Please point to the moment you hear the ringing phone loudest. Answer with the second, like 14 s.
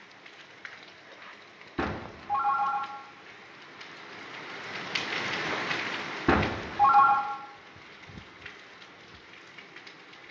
7 s.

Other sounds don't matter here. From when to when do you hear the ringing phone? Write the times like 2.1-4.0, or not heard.
1.8-2.9, 6.2-7.2.